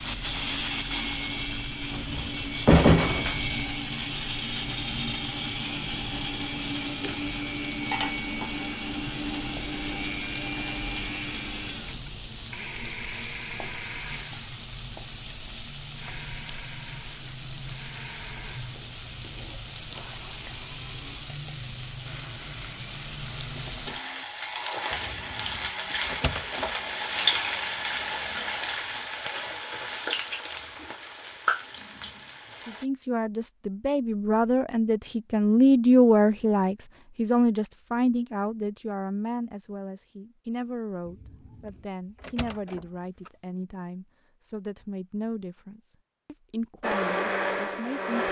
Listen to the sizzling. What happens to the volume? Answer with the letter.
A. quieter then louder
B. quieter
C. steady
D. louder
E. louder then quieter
D.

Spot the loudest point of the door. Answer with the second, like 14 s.
3 s.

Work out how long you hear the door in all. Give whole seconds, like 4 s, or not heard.
6 s.